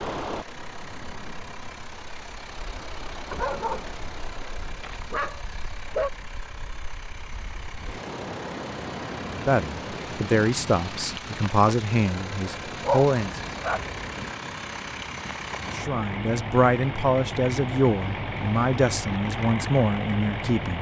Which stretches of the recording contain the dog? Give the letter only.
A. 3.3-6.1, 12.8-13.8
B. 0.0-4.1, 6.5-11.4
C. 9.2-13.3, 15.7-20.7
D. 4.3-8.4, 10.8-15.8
A.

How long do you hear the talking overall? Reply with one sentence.
You can hear the talking for 9 seconds altogether.